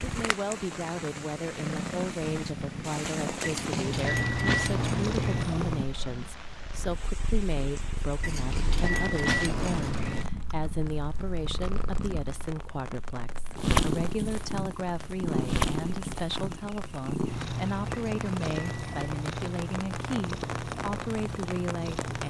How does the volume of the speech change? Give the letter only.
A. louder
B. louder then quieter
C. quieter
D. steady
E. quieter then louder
D.